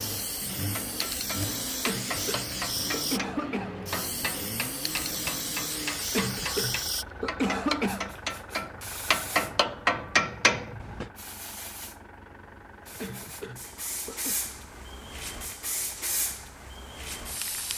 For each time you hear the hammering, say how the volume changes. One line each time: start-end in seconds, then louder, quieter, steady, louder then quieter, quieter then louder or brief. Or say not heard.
0.6-11.1 louder.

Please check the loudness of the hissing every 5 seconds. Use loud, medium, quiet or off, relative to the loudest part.
loud, loud, medium, loud.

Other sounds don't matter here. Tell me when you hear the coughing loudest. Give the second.
8 s.